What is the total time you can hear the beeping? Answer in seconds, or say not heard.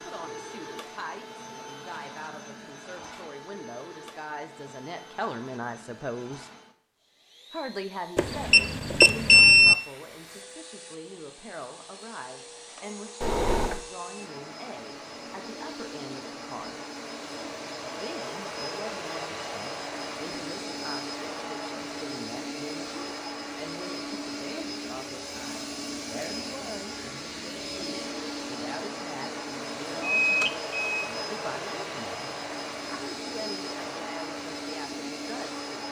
3 s.